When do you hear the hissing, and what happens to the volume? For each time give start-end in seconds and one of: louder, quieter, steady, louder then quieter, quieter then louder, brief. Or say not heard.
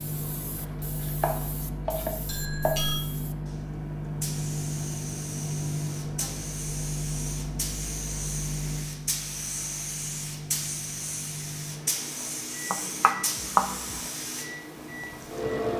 0.0-15.7 louder.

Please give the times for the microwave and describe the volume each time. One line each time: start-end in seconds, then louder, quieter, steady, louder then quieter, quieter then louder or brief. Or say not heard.
0.0-15.6 quieter.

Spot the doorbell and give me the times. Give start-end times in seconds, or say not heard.
2.2-3.0.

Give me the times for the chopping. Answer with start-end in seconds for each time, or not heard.
0.6-2.8, 12.7-14.0.